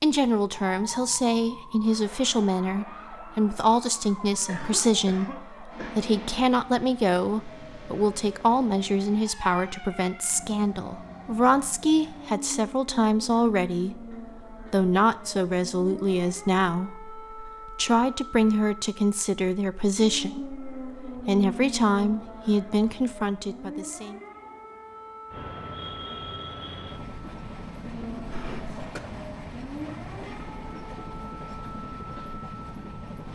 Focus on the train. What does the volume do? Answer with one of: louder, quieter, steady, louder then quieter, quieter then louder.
steady.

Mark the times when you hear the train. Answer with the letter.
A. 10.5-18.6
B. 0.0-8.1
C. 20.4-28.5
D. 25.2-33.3
D.